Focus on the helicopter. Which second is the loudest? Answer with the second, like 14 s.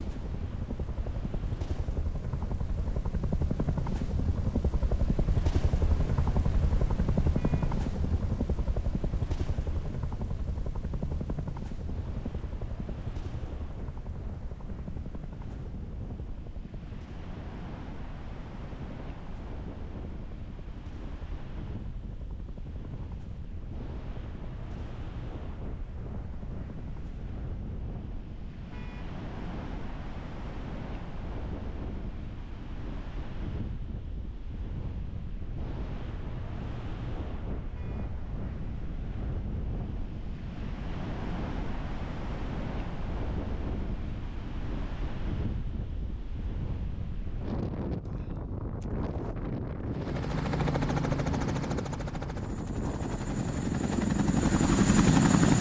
55 s.